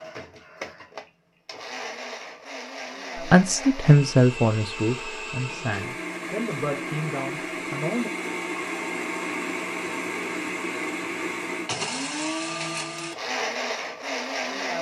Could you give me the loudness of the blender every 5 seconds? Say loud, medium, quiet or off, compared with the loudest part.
medium, loud, loud.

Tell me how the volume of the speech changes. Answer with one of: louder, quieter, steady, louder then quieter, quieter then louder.
quieter.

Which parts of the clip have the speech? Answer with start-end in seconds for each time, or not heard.
3.2-8.1.